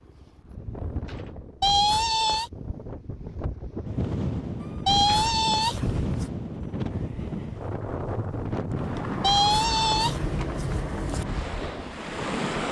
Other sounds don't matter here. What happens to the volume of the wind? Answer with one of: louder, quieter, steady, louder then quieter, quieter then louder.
louder.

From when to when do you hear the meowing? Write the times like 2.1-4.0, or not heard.
1.6-2.5, 4.8-6.3, 9.2-11.2.